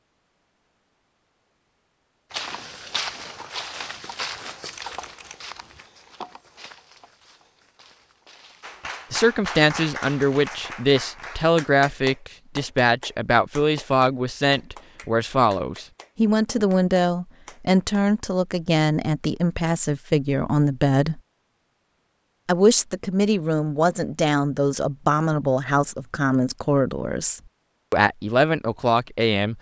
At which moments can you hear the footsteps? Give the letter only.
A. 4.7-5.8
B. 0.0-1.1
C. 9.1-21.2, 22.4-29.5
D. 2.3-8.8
D.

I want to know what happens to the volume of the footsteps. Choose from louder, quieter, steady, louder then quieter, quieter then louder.
quieter.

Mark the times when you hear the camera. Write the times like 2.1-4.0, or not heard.
4.7-5.8.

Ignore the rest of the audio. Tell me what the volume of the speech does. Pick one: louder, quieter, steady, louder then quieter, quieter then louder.
steady.